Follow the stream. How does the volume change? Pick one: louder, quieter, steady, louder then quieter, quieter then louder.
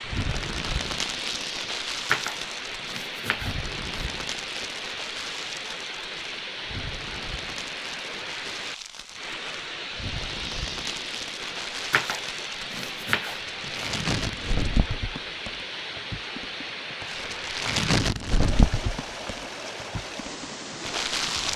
steady.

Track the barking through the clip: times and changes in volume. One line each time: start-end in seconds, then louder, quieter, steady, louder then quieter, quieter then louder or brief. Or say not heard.
not heard.